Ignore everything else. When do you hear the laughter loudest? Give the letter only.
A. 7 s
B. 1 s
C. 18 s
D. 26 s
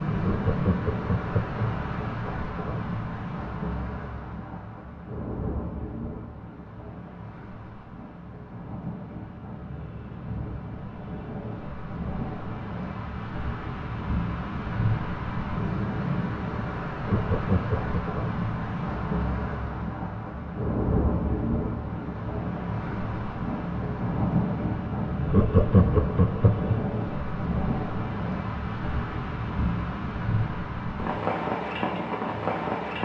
D.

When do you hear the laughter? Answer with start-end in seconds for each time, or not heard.
0.2-1.6, 17.1-18.1, 25.2-26.8.